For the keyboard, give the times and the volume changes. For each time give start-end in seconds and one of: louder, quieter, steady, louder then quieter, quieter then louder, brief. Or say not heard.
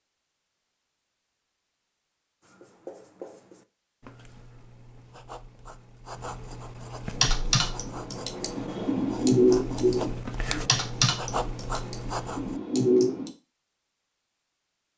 7.2-13.3 louder then quieter.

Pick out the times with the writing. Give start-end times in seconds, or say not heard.
2.4-12.6.